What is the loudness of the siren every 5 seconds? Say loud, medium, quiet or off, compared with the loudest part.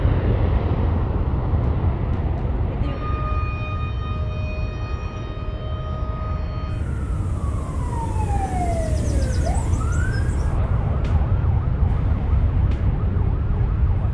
loud, loud, medium.